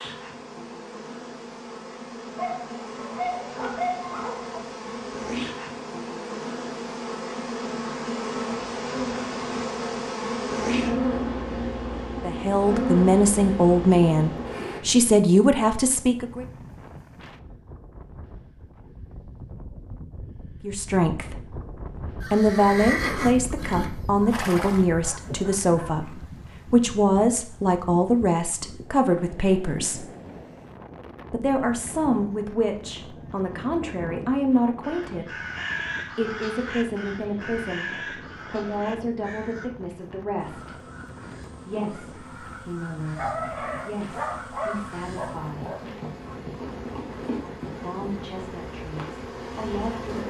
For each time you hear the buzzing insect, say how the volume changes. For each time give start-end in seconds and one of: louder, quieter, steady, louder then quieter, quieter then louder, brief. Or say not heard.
0.0-14.8 louder
40.4-50.2 louder.